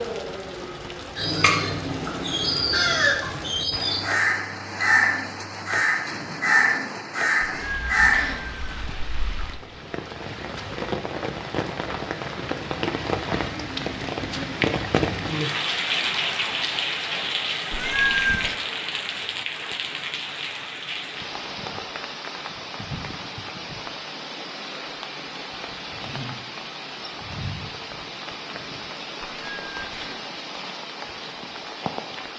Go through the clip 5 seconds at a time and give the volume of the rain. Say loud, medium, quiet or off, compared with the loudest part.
medium, medium, loud, loud, medium, medium, medium.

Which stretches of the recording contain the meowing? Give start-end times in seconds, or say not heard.
7.4-8.9, 17.7-18.6, 29.2-30.2.